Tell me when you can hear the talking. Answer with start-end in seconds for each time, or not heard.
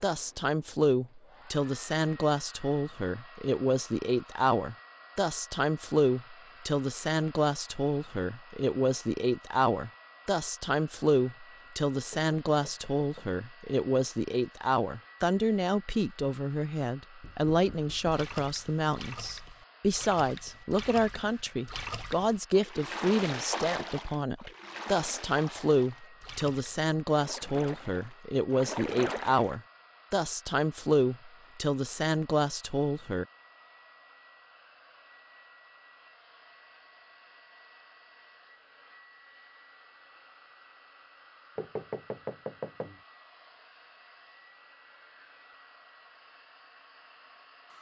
0.0-33.2.